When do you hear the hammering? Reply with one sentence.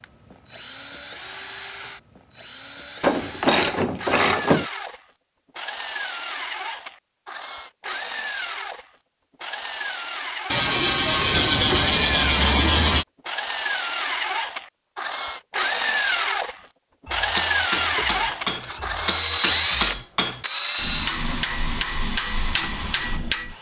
You can hear the hammering from 17.1 to 23.5 s.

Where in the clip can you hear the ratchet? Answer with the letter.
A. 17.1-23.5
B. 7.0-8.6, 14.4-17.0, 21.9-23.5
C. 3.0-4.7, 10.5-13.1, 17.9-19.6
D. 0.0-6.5
C.